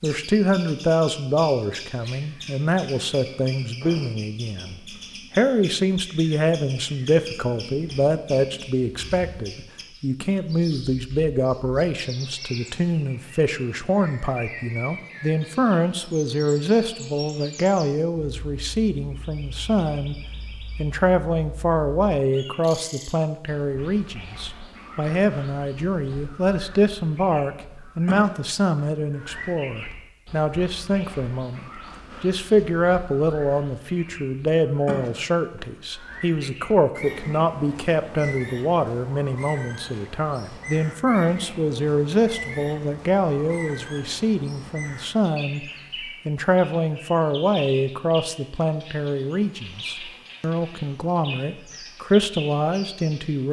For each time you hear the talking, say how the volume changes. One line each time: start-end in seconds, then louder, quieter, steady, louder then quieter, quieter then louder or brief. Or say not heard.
0.0-45.6 steady
46.2-53.4 quieter then louder.